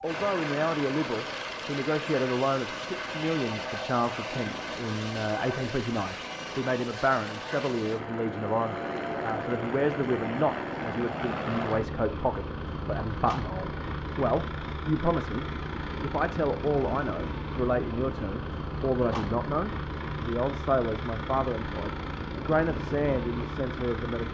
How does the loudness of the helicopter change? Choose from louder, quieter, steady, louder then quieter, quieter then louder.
steady.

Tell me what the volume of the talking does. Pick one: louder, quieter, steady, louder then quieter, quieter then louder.
steady.